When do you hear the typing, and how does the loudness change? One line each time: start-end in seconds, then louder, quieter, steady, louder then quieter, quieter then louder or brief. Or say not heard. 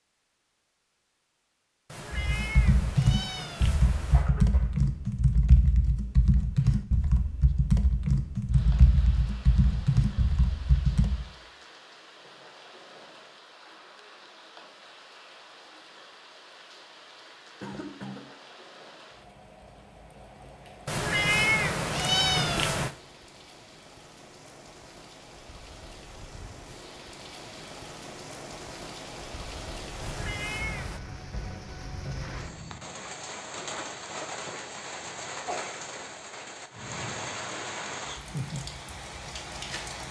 2.1-11.2 steady.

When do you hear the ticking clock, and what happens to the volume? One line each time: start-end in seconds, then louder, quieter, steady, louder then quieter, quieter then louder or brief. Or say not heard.
not heard.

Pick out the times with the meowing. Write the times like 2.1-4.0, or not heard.
1.9-4.3, 20.9-22.9, 30.0-31.0.